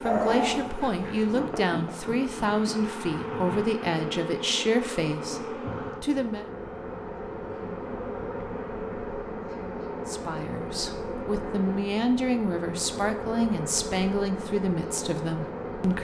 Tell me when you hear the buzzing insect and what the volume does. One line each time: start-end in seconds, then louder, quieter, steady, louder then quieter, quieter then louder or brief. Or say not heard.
0.0-15.9 steady.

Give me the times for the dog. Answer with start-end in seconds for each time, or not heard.
0.0-1.4.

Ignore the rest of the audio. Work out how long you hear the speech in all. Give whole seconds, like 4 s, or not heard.
12 s.